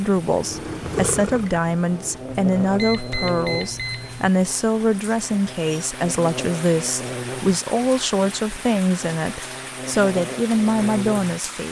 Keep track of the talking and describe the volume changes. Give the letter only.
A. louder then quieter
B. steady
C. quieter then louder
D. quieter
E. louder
B.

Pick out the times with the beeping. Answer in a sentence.
You can hear the beeping from 2.2 to 4.3 s.